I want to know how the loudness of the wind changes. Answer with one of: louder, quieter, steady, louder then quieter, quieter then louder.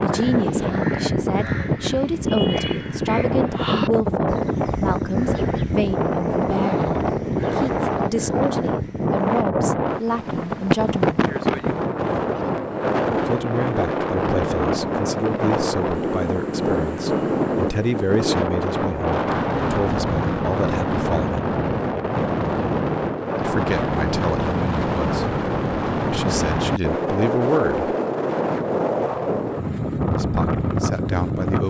steady.